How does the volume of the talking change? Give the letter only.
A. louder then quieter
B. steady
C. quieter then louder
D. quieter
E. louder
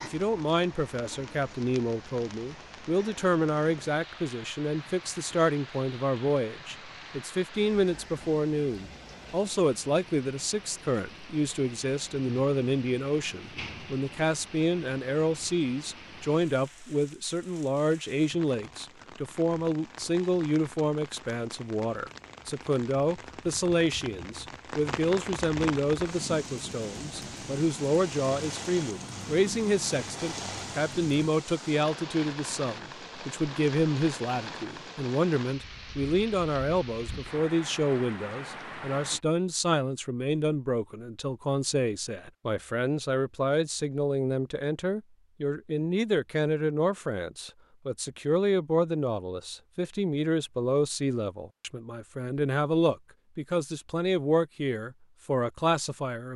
B.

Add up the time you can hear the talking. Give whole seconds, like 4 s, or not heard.
56 s.